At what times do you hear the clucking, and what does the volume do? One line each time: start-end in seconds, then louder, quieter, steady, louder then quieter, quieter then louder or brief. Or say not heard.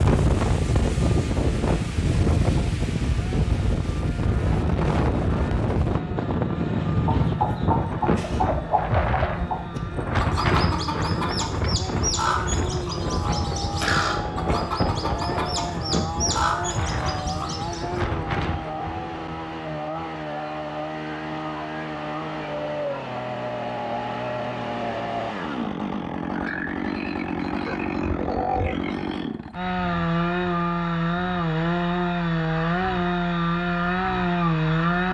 7.0-18.0 steady.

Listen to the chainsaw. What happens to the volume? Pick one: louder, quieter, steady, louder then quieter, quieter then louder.
louder.